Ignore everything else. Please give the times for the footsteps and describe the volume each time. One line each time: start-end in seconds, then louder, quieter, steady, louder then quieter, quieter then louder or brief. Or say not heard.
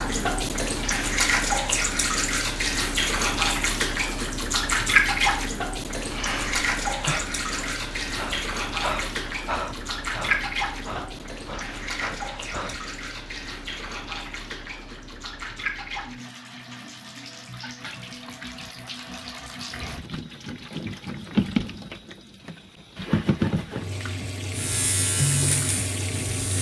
not heard.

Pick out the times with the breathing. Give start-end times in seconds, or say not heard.
6.0-12.8.